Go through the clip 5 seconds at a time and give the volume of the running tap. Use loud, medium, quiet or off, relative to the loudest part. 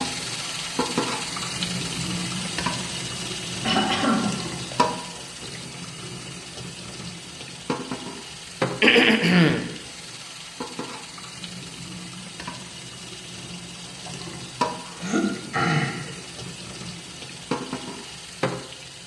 loud, medium, medium, medium.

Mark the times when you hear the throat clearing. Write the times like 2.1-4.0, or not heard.
3.6-4.8, 8.8-9.6, 14.8-16.1.